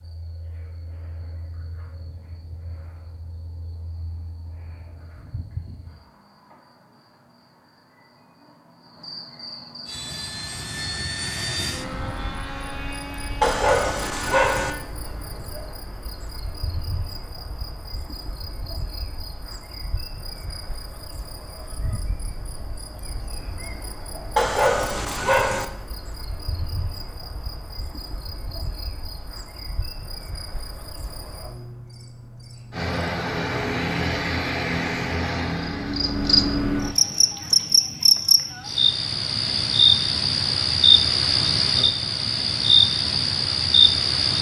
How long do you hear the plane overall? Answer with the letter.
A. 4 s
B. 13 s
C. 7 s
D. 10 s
D.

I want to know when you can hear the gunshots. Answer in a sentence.
You can't hear the gunshots here.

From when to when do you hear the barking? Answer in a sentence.
The barking can be heard from 13.4 to 14.7 s and from 24.4 to 25.6 s.